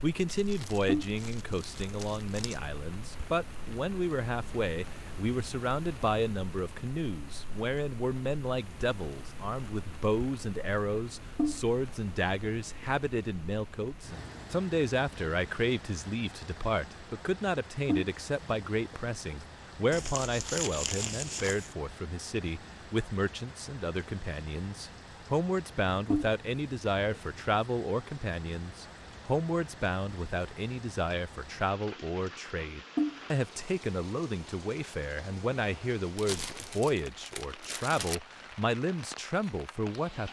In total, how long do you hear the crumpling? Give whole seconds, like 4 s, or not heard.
6 s.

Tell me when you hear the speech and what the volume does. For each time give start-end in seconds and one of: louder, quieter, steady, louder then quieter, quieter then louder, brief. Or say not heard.
0.0-40.2 steady.